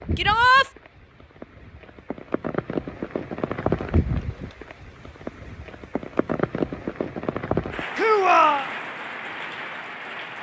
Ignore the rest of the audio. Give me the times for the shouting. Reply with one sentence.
You can hear the shouting from 0.1 to 0.7 s and from 8.0 to 8.7 s.